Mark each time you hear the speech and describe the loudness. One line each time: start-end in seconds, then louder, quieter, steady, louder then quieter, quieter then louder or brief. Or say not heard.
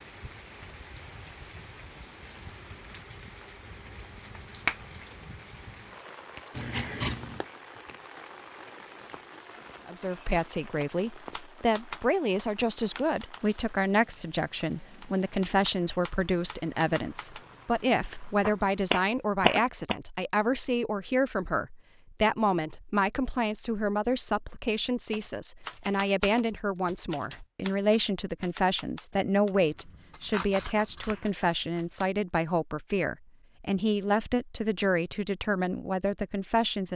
9.8-36.9 steady.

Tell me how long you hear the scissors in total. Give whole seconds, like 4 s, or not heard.
3 s.